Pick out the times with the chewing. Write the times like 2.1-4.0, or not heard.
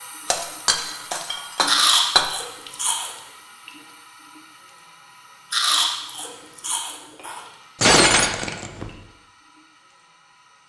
1.6-3.1, 5.5-7.4.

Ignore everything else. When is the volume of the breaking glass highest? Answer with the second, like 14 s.
8 s.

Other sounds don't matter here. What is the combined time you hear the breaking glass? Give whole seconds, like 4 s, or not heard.
3 s.